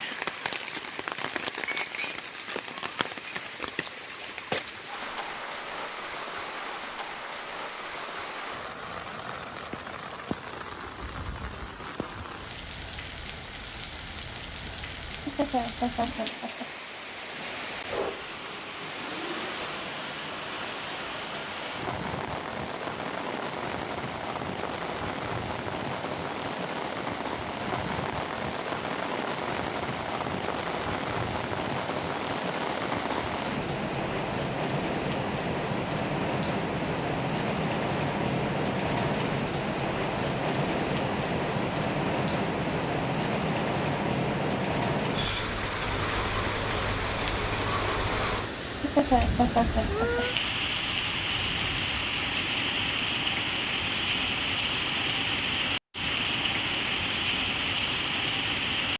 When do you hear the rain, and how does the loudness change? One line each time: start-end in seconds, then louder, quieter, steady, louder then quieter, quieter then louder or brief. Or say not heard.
0.0-58.9 louder.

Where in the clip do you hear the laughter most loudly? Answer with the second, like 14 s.
49 s.